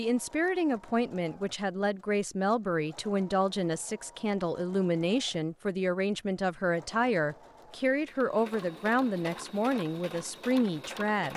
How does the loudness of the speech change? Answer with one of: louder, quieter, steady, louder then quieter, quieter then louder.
steady.